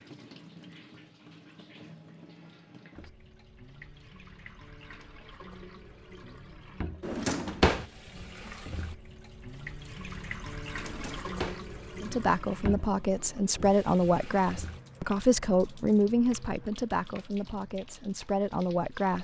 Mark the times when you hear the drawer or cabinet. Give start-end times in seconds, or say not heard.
7.0-7.8, 10.8-11.7.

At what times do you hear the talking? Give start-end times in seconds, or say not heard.
12.0-19.1.